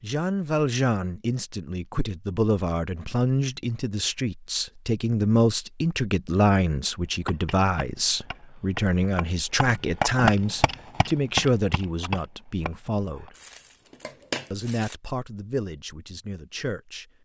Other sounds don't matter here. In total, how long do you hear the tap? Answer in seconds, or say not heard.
not heard.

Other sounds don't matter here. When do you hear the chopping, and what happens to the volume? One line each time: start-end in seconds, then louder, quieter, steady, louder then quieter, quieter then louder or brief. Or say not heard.
7.2-13.3 louder then quieter.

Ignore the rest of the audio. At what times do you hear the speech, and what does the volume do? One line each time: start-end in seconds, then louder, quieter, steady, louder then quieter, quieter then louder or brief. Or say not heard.
0.0-13.3 steady
14.5-17.1 brief.